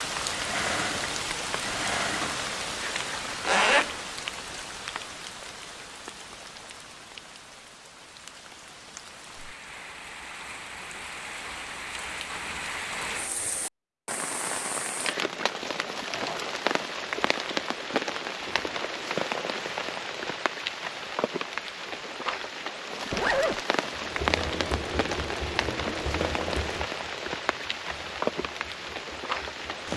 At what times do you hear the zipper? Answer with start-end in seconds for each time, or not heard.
2.8-4.0, 23.1-23.6.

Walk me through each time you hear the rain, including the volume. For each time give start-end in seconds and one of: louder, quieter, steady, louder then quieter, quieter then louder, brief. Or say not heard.
0.0-29.9 quieter then louder.